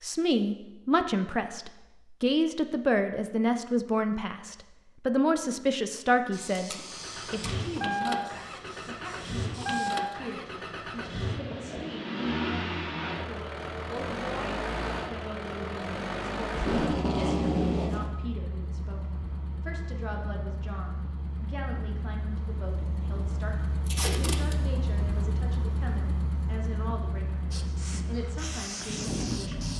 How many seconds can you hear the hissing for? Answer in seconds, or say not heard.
6 s.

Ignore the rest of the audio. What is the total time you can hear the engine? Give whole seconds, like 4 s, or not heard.
23 s.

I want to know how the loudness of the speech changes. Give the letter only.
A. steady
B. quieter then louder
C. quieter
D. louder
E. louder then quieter
C.